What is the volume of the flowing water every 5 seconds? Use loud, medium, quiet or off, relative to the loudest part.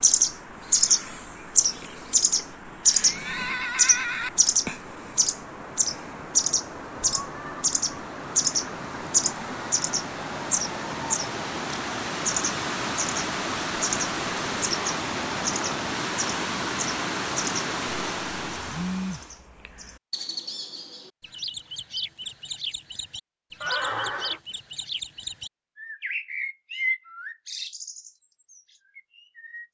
quiet, medium, loud, loud, off, off.